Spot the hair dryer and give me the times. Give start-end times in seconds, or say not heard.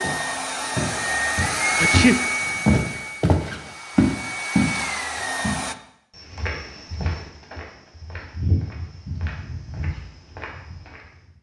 0.0-5.8.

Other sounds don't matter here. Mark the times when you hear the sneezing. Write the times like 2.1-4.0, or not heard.
1.8-2.6.